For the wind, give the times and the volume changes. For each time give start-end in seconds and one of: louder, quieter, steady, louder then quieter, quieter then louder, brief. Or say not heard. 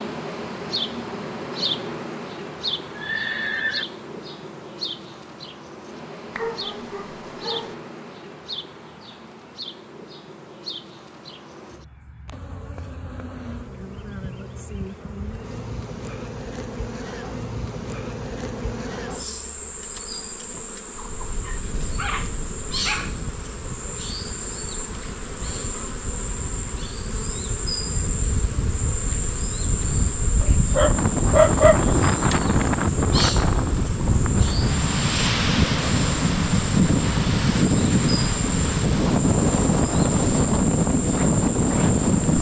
20.9-42.3 louder.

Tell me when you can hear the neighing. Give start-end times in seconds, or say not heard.
3.0-3.9.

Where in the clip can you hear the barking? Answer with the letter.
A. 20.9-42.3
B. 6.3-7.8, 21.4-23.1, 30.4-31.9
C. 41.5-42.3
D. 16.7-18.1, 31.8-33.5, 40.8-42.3
B.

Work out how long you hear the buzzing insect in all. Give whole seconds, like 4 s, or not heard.
42 s.